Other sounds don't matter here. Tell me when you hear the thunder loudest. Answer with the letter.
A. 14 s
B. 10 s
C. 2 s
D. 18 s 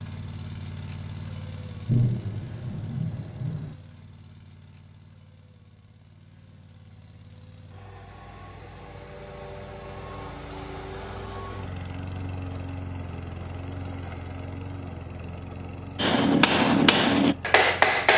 C.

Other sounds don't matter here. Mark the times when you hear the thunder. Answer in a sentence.
You can hear the thunder from 1.9 to 3.8 s.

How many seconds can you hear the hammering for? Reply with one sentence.
The hammering can be heard for 2 seconds in total.